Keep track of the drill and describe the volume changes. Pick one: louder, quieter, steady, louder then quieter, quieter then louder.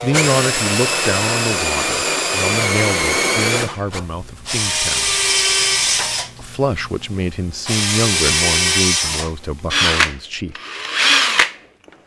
steady.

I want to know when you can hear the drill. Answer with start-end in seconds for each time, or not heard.
0.0-11.6.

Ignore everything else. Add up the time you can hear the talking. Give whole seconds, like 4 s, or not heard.
9 s.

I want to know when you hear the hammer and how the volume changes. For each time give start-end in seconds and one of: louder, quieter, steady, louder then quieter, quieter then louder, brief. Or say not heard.
not heard.